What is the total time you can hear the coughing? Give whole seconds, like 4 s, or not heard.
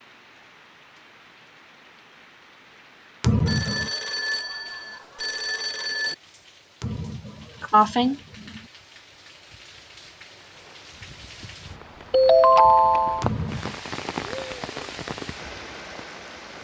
3 s.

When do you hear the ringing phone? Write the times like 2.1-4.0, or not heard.
3.5-6.2, 12.1-13.2.